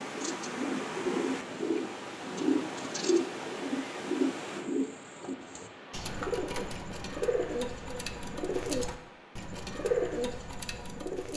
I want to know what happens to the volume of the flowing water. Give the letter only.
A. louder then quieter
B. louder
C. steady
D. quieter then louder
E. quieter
E.